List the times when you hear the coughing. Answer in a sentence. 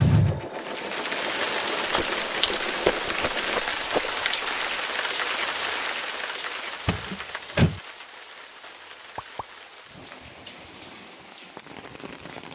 You can't hear the coughing here.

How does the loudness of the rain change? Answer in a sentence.
The volume of the rain goes down.